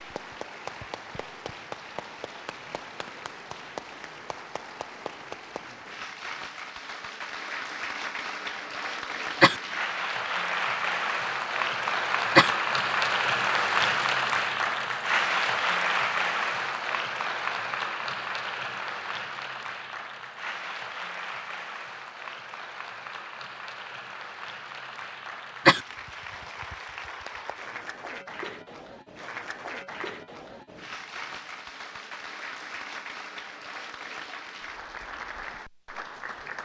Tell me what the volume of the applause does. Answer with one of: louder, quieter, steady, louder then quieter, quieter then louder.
louder then quieter.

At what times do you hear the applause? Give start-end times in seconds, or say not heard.
0.0-36.6.